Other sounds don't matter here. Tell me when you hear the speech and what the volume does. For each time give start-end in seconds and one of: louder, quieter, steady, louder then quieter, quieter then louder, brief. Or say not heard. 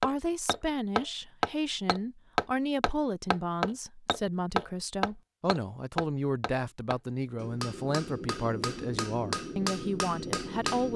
0.0-10.9 steady.